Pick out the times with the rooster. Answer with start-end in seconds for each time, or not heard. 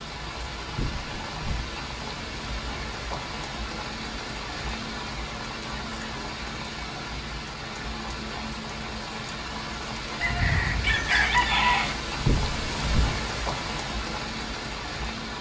10.2-11.9.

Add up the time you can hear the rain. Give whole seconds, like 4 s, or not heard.
15 s.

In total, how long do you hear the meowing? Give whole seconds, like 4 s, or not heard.
2 s.